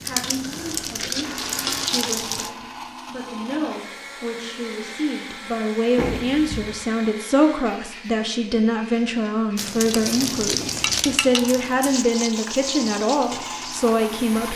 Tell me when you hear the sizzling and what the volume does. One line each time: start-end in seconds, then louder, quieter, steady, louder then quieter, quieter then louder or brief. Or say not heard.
0.0-2.5 brief
9.6-14.5 quieter.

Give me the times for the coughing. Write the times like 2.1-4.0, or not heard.
not heard.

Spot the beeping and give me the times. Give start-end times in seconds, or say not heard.
6.0-6.7.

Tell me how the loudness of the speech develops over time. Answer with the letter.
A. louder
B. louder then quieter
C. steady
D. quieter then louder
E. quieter
A.